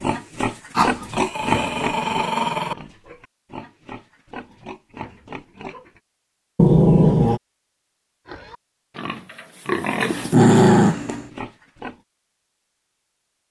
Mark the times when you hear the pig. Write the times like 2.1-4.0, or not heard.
0.0-6.0, 8.2-12.0.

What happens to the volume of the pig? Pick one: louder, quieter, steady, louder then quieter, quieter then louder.
quieter then louder.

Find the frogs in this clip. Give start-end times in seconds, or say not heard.
not heard.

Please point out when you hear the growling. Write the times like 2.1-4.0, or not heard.
0.8-2.8, 6.5-7.4, 10.1-11.2.